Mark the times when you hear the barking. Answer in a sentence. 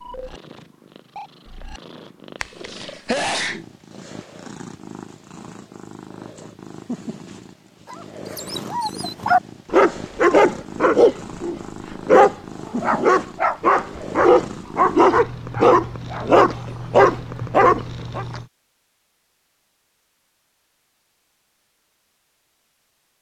The barking can be heard from 7.9 to 18.2 s.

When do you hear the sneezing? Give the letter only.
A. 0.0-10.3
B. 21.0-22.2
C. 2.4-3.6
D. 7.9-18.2
C.